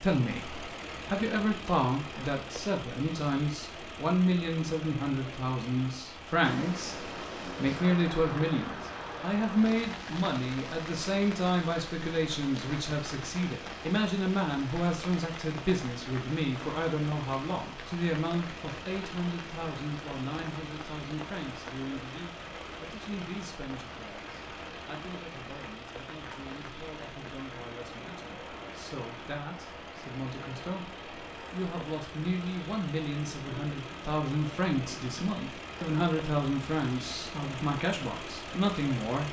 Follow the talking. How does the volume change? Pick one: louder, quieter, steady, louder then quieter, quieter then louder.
quieter then louder.